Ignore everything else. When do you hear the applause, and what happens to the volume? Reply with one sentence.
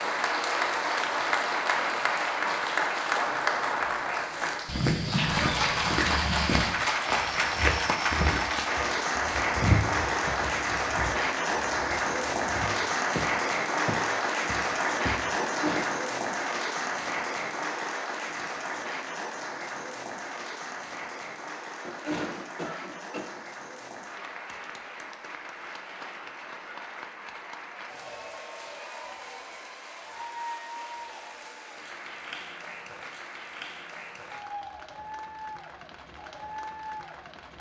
You can hear the applause from 0.0 to 37.5 s, getting quieter.